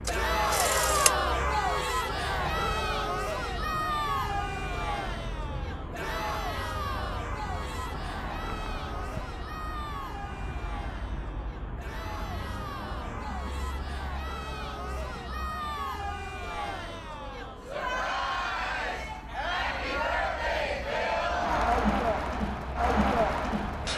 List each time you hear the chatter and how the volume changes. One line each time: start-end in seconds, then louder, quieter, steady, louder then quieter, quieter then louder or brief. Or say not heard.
0.1-23.9 quieter then louder.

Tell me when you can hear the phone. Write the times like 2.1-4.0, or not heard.
0.1-1.1.